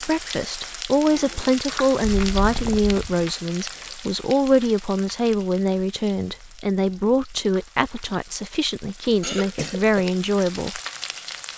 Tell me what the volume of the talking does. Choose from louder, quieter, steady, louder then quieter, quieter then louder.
steady.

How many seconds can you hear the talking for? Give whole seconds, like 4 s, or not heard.
11 s.